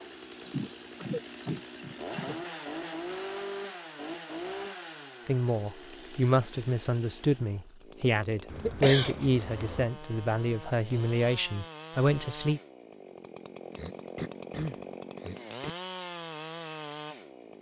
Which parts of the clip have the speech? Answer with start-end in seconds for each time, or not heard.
5.2-12.6.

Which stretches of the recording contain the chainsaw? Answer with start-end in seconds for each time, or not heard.
0.0-17.5.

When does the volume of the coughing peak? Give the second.
9 s.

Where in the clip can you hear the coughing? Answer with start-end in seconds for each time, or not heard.
0.4-2.5, 8.5-9.8, 13.7-15.7.